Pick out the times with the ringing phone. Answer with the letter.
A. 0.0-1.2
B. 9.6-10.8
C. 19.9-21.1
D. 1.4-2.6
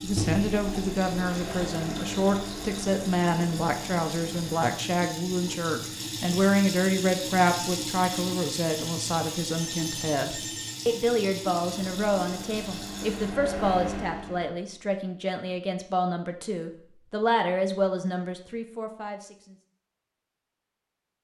B.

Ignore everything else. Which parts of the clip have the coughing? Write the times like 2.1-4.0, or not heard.
not heard.